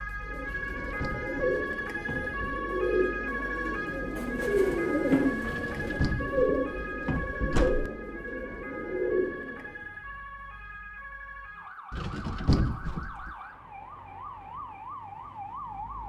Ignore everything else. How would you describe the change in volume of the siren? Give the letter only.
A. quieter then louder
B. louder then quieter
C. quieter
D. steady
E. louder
C.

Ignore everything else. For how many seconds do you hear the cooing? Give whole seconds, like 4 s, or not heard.
10 s.